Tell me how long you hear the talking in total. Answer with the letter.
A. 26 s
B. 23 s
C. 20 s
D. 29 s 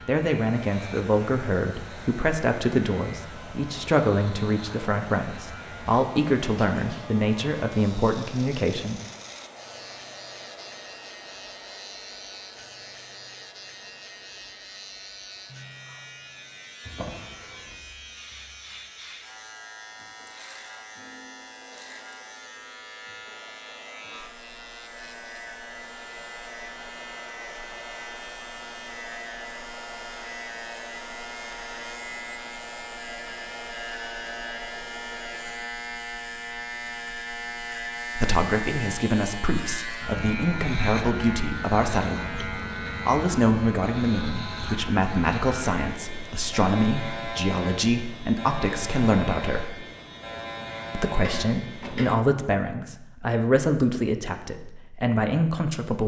A.